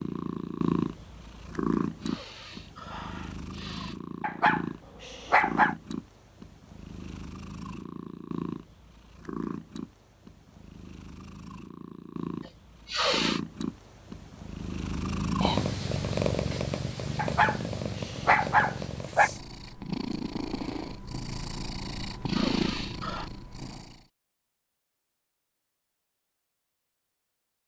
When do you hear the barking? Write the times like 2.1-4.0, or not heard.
4.2-5.8, 17.1-19.3.